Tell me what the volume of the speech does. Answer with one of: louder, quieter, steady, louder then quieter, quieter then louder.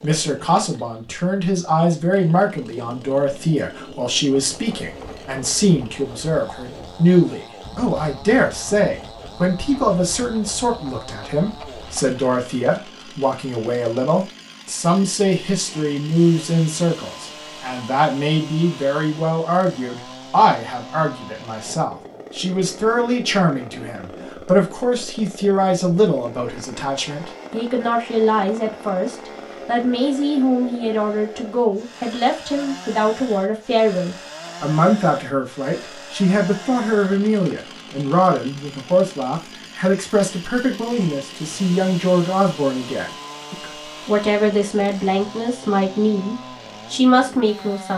steady.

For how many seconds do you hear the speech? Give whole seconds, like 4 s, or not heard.
48 s.